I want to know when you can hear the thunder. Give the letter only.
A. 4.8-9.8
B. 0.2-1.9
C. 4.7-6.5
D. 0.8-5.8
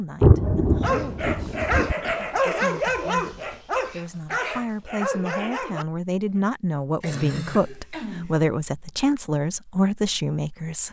B.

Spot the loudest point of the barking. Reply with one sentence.
The loudest moment of the barking is at 3 seconds.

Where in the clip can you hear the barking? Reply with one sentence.
The barking can be heard from 0.8 to 5.8 s.